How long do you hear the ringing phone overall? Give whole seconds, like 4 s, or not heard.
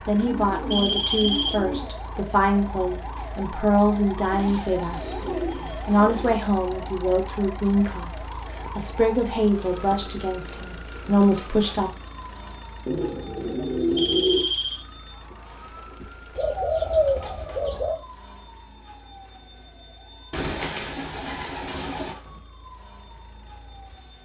2 s.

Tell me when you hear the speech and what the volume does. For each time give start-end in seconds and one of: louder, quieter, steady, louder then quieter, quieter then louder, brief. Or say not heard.
0.1-11.9 steady.